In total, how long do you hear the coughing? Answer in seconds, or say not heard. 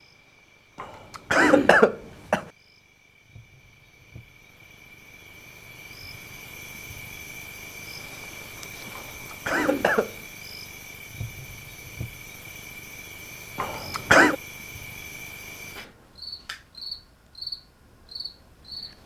4 s.